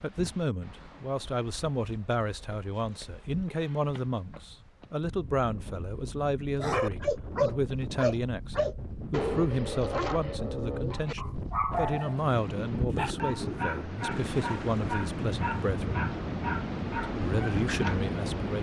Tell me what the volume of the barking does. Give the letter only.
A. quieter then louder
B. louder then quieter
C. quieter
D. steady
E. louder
C.